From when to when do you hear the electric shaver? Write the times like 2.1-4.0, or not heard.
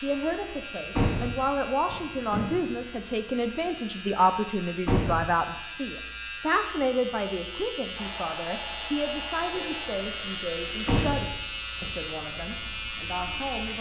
0.0-13.7.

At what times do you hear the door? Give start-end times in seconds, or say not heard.
0.9-2.8, 4.8-5.3, 10.8-11.9.